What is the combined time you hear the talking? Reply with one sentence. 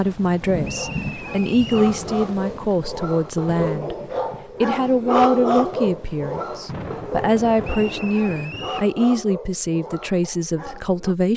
The talking can be heard for 11 seconds in total.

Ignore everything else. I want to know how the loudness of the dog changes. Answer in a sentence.
The loudness of the dog goes up, then down.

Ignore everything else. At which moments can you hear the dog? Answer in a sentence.
The dog can be heard from 0.6 to 11.2 s.